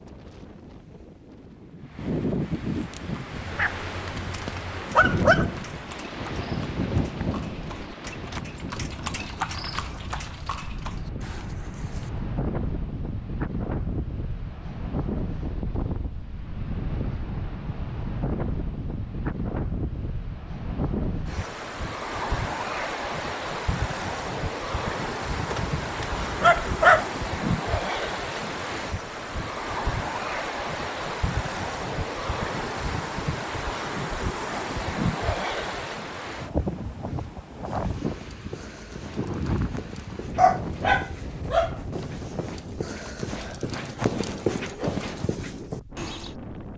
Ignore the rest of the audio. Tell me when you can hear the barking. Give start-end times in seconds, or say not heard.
3.4-5.5, 25.5-27.1, 40.4-41.8.